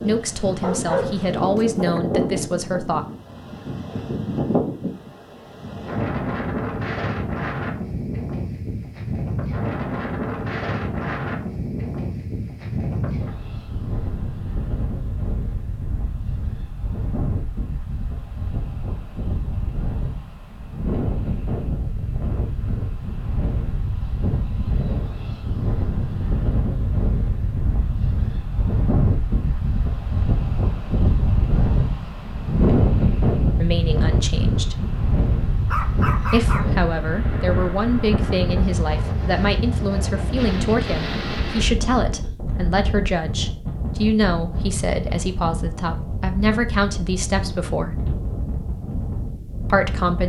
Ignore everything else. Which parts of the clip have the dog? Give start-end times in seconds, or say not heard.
0.6-2.0, 35.6-36.7.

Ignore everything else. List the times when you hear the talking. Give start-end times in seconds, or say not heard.
0.0-3.0, 33.6-34.8, 36.2-48.0, 49.7-50.2.